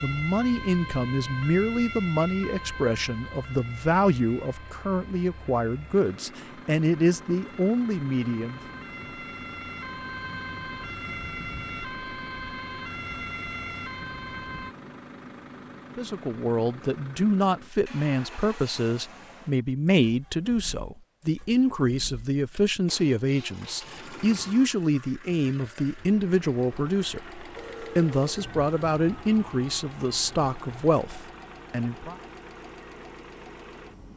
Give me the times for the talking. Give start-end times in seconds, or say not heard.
0.0-8.6, 15.9-32.1.